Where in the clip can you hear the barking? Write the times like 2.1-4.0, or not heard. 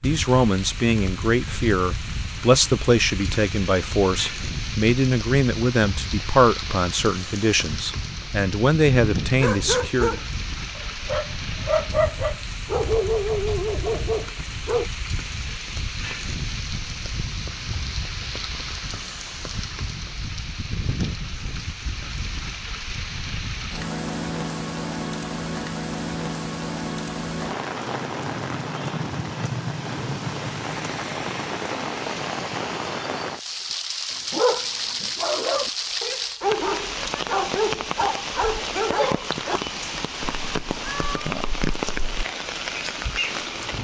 9.3-14.8, 34.3-39.6.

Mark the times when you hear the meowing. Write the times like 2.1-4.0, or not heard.
40.2-42.2.